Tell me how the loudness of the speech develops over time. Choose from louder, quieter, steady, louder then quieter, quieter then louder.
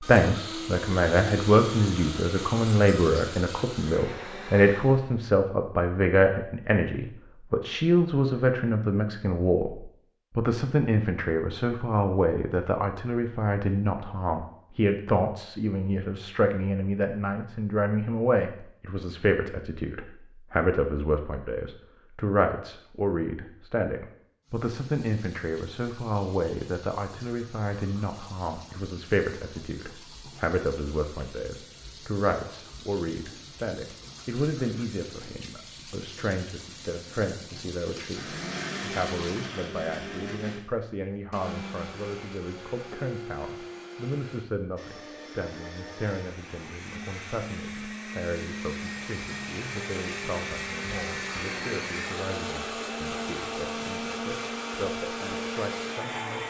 quieter.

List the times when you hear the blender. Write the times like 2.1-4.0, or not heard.
0.0-5.2, 38.0-56.4.